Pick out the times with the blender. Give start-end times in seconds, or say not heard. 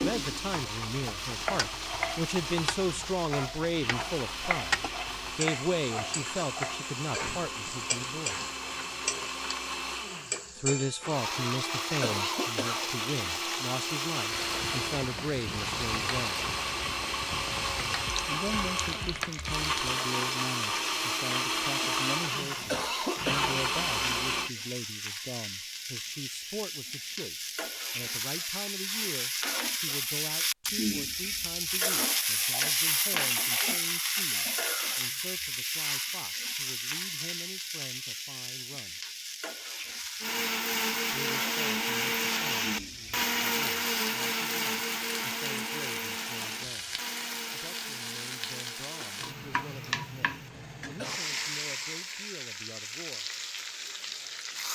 0.0-24.5, 40.2-51.5.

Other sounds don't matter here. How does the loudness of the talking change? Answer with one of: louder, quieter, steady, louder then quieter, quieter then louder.
quieter.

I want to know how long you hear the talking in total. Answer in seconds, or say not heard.
47 s.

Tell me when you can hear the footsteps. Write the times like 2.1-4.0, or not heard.
not heard.